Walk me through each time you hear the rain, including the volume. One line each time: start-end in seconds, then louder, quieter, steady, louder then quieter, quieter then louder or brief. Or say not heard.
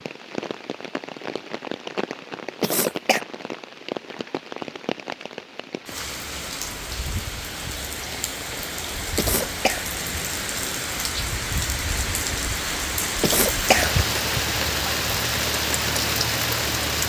0.0-17.0 louder.